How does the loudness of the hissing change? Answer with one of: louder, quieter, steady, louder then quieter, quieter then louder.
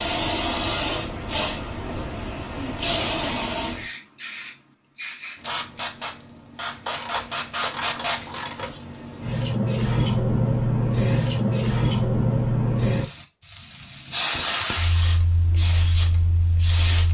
quieter then louder.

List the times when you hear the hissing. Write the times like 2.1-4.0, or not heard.
0.0-17.1.